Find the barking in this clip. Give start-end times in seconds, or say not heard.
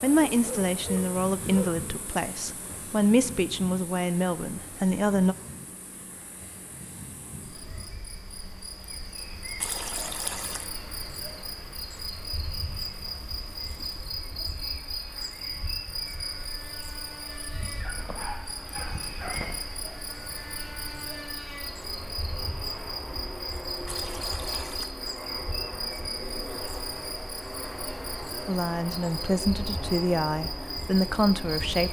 0.3-1.8, 17.8-19.6.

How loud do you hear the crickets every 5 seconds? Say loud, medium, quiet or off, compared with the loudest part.
medium, medium, loud, loud, loud, loud, loud.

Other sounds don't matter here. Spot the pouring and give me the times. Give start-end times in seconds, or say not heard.
9.6-10.7, 23.9-24.9.